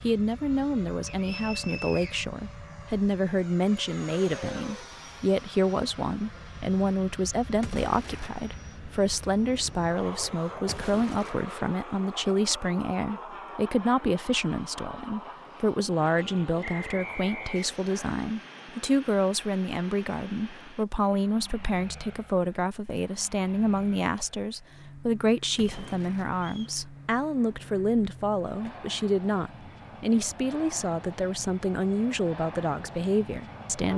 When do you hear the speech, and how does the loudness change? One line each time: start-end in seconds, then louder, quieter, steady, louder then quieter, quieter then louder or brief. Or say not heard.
0.0-33.9 steady.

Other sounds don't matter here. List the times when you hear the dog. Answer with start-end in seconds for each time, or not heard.
not heard.